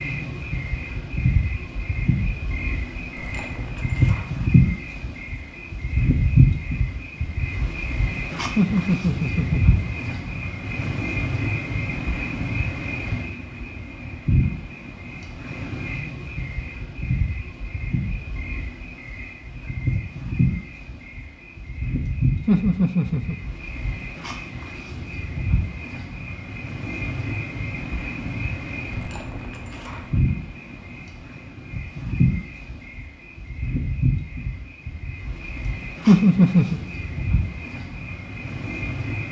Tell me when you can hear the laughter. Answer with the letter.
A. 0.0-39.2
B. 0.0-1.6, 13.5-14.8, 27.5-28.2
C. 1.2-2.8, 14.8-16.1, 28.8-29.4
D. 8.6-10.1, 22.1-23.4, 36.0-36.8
D.